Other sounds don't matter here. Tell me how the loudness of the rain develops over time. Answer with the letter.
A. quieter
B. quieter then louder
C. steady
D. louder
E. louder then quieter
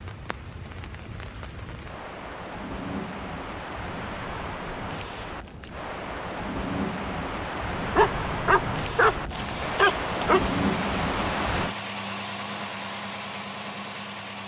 D.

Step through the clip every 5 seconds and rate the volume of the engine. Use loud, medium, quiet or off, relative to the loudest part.
off, loud, loud.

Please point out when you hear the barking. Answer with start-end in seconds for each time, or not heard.
7.8-10.5.